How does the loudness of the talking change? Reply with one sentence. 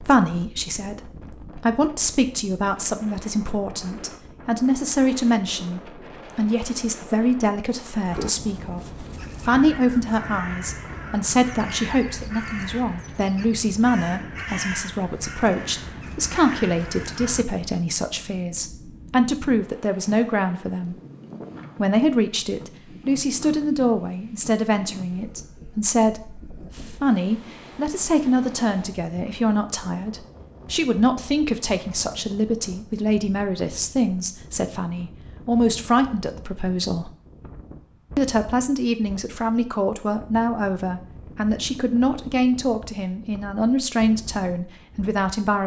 The loudness of the talking stays about the same.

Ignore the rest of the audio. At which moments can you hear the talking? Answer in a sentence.
The talking can be heard from 0.0 to 20.9 s, from 21.8 to 37.1 s and from 38.1 to 45.6 s.